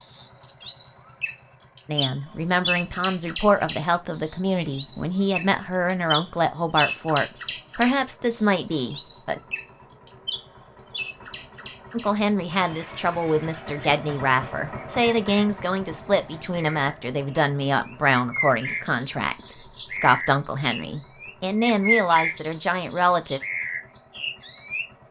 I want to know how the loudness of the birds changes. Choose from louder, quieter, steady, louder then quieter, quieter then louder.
quieter then louder.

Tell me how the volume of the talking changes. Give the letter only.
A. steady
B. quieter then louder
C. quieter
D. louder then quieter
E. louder
A.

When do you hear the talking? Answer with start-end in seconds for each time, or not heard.
1.9-9.4, 11.9-23.4.